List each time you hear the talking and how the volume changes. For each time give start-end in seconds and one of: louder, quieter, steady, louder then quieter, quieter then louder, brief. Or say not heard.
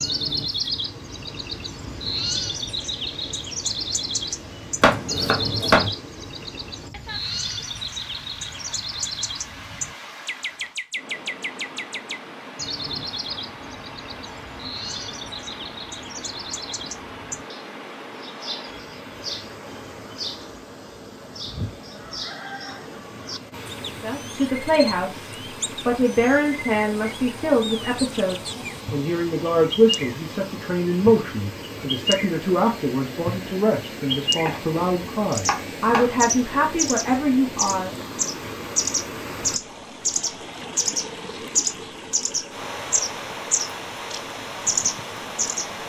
24.0-37.9 steady.